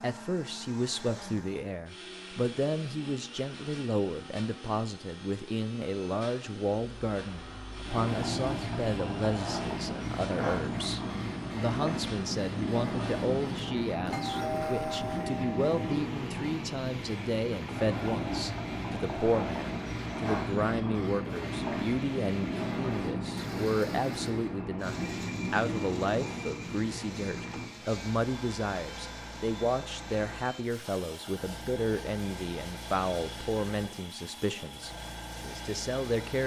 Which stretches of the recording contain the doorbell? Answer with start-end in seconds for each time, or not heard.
14.1-15.8.